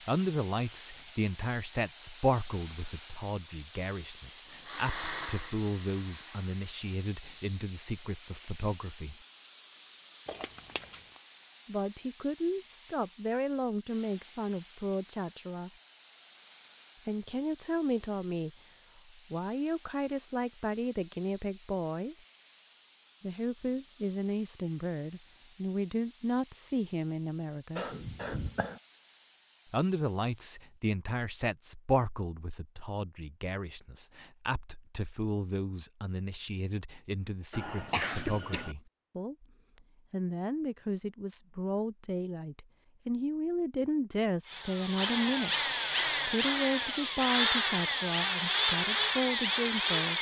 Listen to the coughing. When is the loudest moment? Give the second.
38 s.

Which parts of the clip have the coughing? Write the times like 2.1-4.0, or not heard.
10.2-11.1, 27.8-28.8, 37.5-38.8.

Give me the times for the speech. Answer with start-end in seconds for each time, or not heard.
0.1-9.2, 11.7-15.7, 17.1-22.1, 23.2-27.9, 29.7-39.5, 40.1-50.1.